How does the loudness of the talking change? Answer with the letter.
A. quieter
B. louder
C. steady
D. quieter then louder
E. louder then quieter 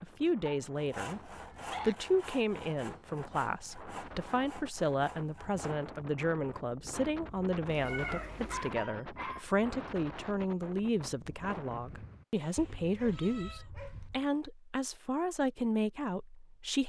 C.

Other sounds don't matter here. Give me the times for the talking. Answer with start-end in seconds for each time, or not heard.
0.0-16.8.